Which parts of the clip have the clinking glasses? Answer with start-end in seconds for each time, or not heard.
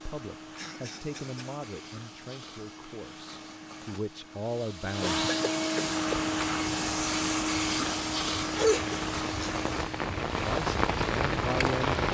not heard.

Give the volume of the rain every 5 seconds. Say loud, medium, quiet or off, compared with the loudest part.
off, medium, loud.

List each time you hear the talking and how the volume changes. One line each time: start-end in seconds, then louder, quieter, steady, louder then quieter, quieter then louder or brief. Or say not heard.
0.1-5.3 quieter then louder
10.4-12.0 brief.